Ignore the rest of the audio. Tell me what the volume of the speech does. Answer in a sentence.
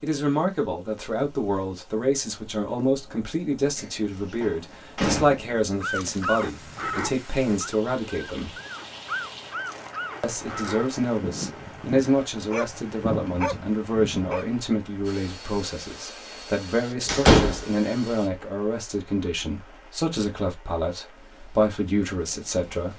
The loudness of the speech stays about the same.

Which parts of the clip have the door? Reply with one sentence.
You can hear the door from 3.8 to 5.6 s and from 17.1 to 17.6 s.